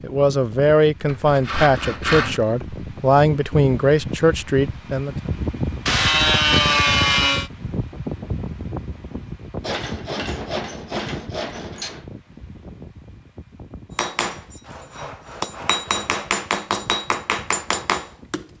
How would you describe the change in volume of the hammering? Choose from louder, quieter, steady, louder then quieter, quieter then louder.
louder.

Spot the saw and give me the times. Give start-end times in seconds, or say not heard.
1.1-2.4, 5.8-7.5, 9.6-12.1, 14.6-16.3.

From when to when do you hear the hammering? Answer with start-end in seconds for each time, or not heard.
13.9-18.4.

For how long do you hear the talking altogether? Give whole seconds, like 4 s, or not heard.
5 s.